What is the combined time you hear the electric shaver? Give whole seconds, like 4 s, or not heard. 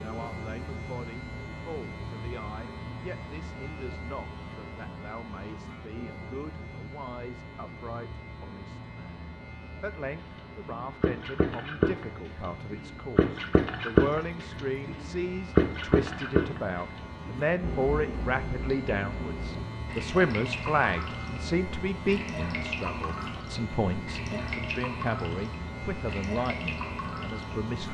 28 s.